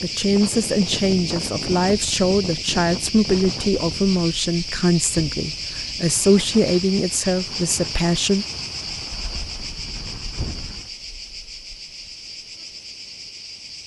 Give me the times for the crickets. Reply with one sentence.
You can hear the crickets from 0.0 to 13.8 s.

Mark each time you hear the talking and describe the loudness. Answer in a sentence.
The talking can be heard from 0.0 to 8.4 s, at a steady volume.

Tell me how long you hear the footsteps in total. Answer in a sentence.
You can't hear the footsteps here.